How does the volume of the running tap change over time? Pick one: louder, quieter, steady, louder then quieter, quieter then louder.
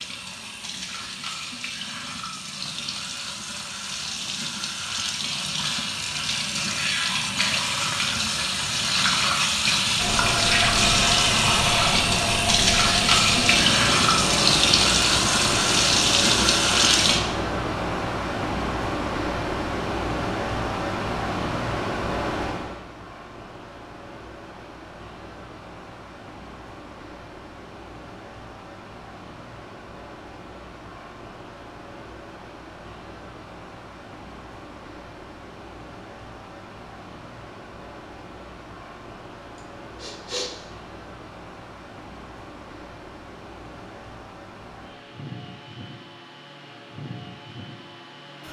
louder.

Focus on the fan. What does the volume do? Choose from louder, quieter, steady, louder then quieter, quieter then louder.
quieter.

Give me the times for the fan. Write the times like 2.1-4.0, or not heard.
9.9-48.4.